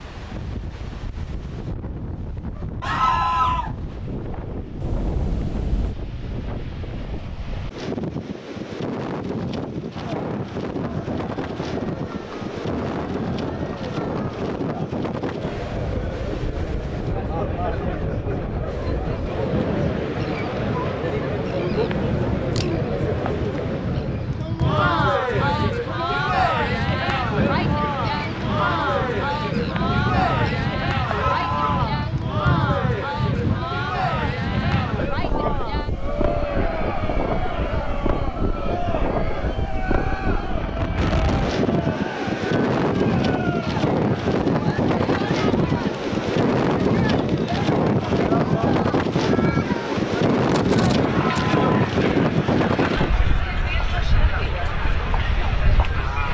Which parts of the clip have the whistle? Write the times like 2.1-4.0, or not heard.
not heard.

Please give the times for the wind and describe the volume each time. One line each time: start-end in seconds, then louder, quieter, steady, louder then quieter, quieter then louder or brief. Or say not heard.
0.0-56.3 louder.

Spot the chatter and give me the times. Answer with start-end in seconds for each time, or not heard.
9.9-56.3.